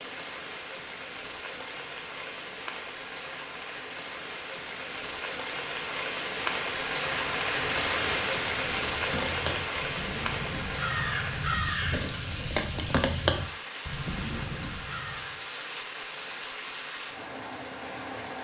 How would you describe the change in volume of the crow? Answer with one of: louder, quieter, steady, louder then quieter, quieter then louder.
louder then quieter.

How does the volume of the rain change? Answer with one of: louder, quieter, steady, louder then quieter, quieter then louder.
louder then quieter.